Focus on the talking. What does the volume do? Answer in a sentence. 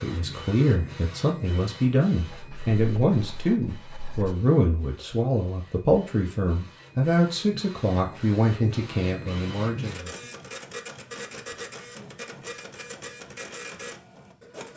The volume of the talking stays about the same.